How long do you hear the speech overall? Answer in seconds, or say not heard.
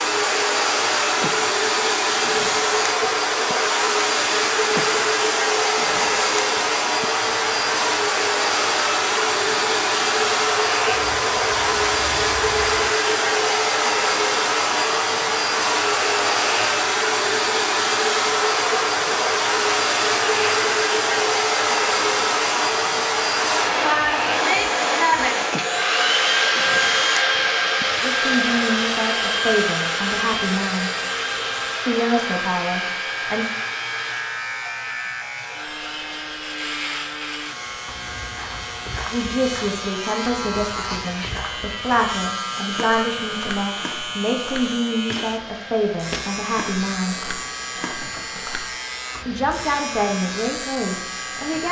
15 s.